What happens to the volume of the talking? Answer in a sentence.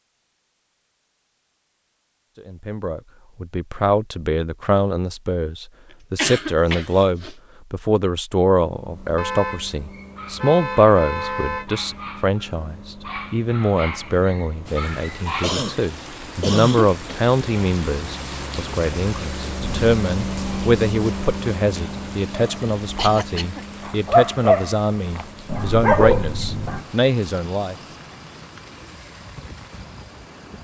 The volume of the talking stays about the same.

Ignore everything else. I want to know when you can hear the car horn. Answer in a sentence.
You can hear the car horn from 9.2 to 11.7 s.